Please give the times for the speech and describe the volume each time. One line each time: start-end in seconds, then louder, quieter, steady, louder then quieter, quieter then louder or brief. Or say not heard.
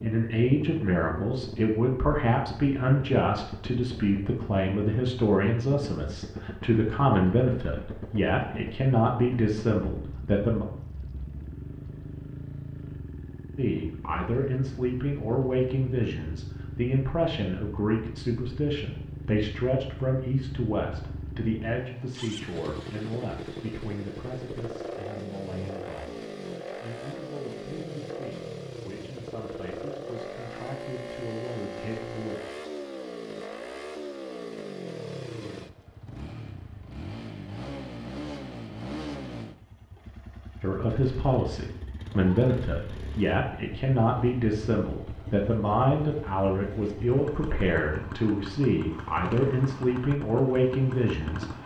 0.0-10.7 steady
13.6-32.4 quieter
40.6-51.6 steady.